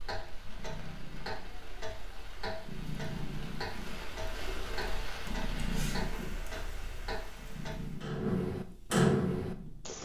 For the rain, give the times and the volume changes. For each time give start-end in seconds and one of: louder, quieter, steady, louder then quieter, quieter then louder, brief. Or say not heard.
0.0-8.2 louder then quieter.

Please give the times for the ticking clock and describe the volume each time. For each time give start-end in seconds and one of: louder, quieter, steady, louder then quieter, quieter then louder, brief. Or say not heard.
0.0-10.0 louder.